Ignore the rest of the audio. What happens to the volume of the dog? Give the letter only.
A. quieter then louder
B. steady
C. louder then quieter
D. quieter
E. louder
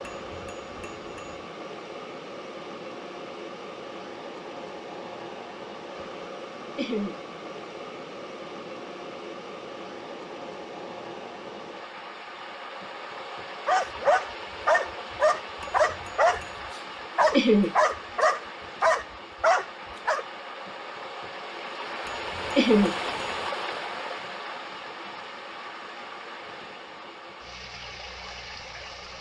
B.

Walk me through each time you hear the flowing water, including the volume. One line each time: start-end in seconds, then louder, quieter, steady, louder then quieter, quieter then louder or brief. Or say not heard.
0.0-29.1 steady.